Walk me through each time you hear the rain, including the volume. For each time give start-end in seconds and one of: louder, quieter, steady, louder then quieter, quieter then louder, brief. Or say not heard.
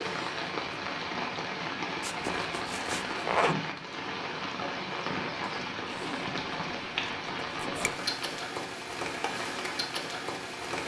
0.0-10.8 steady.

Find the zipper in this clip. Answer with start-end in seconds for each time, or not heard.
2.0-3.5, 5.8-6.4, 7.4-8.0.